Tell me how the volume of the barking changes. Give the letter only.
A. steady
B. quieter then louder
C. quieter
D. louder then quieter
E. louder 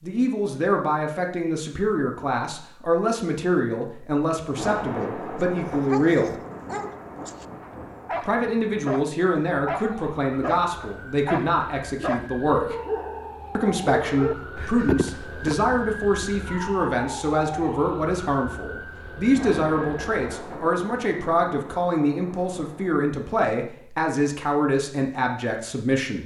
E.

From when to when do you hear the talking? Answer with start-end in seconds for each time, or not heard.
0.0-6.3, 8.2-12.8, 13.6-26.2.